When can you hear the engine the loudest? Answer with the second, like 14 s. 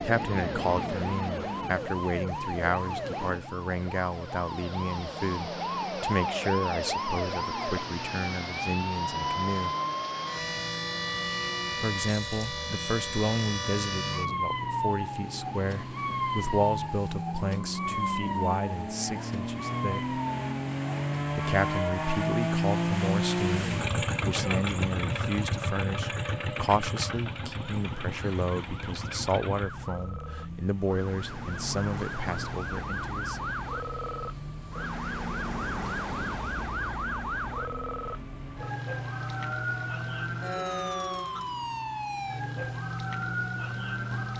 23 s.